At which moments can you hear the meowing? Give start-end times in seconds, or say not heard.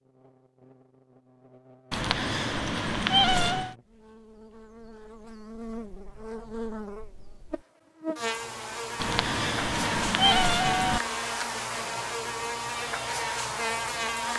1.9-3.8, 8.9-11.0.